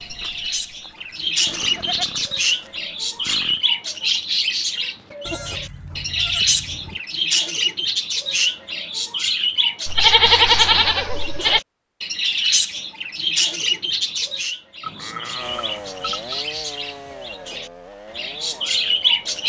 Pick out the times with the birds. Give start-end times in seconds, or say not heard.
0.0-19.4.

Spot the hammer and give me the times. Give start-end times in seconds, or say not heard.
not heard.